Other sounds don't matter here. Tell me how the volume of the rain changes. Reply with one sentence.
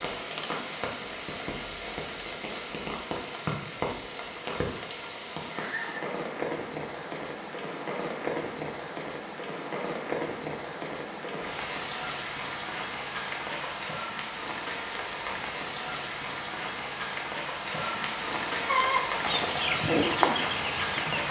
The loudness of the rain stays about the same.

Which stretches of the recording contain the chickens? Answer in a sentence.
The chickens can be heard from 18.6 to 21.2 s.